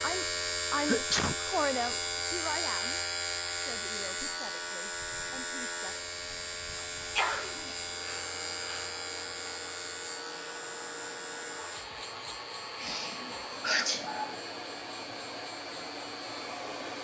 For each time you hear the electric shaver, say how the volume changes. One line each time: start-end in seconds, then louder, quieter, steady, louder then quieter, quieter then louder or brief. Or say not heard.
0.0-16.9 quieter.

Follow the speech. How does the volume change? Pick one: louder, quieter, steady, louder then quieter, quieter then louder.
quieter.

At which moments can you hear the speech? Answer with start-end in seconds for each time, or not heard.
0.0-6.0.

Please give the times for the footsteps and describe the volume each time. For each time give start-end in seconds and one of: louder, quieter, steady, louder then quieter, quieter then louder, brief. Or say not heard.
not heard.